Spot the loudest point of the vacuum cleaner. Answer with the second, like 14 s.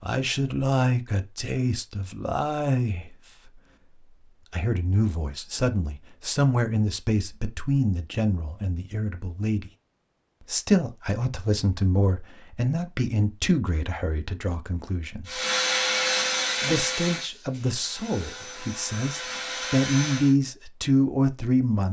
16 s.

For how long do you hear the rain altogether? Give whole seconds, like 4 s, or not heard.
not heard.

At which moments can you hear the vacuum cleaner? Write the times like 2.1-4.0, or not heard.
15.2-20.4.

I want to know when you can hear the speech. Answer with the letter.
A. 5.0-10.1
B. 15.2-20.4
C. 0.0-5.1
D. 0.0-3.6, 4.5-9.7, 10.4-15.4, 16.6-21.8
D.